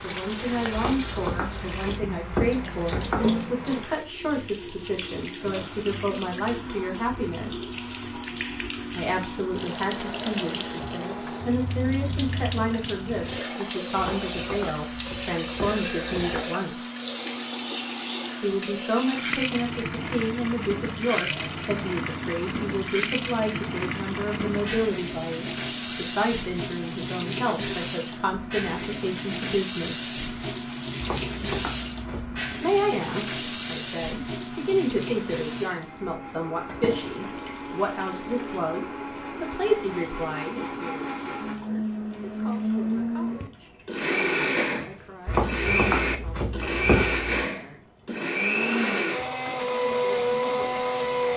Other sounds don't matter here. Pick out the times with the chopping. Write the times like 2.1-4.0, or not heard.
0.7-3.3, 13.9-16.4, 30.9-32.4, 45.2-47.3.